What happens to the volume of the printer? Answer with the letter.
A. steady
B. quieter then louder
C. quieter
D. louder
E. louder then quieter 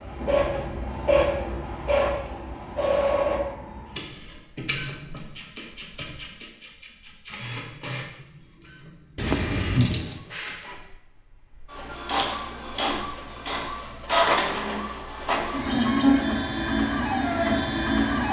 B.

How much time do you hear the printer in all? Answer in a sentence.
The printer can be heard for 18 seconds in total.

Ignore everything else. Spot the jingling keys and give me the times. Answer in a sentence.
The jingling keys can be heard from 9.2 to 10.2 s.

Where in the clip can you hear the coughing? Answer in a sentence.
The coughing can't be heard in this clip.